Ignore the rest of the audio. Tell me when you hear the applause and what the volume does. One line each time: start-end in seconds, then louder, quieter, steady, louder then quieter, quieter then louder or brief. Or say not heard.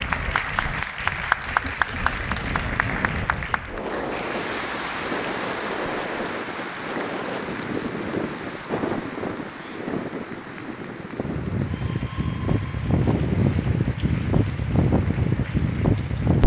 0.0-16.4 quieter.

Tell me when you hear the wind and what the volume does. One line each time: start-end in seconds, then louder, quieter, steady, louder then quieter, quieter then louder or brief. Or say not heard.
0.0-16.4 louder.